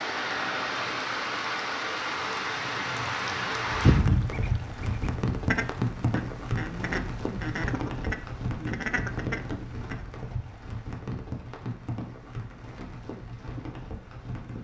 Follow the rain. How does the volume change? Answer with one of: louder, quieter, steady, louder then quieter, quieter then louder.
quieter.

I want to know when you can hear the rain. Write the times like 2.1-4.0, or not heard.
0.0-14.6.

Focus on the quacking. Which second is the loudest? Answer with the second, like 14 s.
4 s.